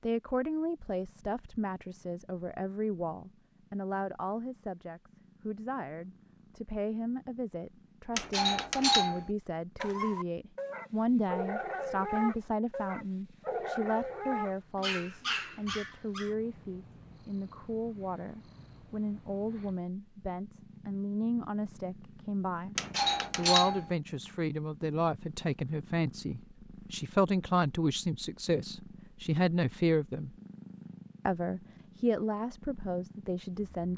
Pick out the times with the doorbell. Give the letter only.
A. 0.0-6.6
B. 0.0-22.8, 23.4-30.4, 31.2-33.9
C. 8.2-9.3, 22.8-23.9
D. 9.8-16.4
C.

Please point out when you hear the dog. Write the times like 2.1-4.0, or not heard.
9.8-16.4.